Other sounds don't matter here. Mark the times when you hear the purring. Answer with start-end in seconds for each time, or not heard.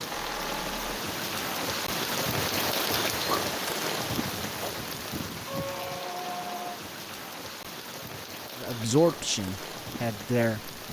not heard.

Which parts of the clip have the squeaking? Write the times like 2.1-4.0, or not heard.
0.1-0.9, 5.5-6.8.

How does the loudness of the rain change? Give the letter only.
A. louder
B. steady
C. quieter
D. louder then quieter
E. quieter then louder
C.